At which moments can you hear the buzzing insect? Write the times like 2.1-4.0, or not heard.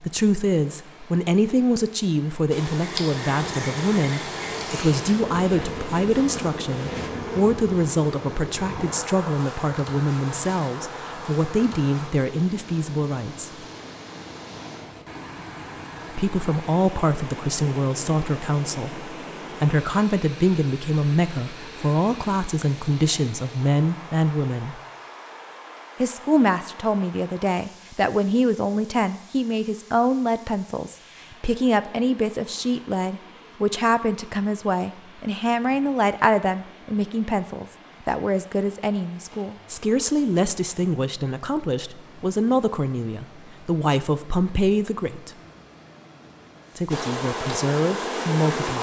2.5-12.1, 46.9-48.7.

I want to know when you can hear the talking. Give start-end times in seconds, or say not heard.
0.0-13.7, 16.1-24.8, 26.0-45.3, 46.8-48.7.